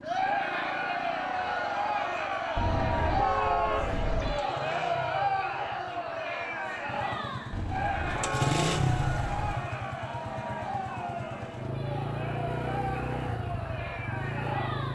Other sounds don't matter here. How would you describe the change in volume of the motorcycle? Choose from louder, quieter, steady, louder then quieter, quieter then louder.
louder.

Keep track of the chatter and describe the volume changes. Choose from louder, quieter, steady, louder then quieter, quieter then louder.
quieter.